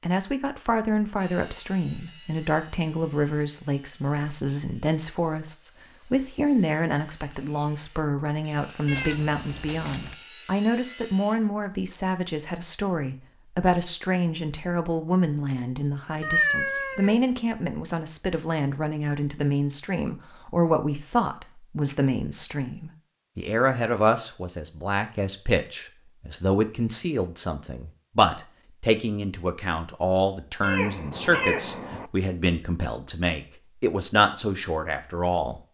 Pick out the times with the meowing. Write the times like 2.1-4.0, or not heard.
8.8-10.2, 16.2-17.2, 30.6-32.1.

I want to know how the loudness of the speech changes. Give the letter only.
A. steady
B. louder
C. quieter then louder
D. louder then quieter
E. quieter
A.